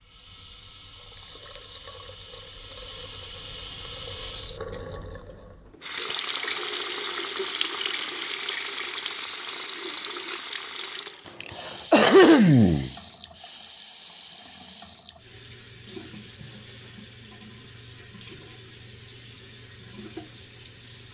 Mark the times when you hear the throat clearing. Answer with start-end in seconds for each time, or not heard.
11.2-12.9.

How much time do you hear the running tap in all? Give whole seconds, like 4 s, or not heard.
21 s.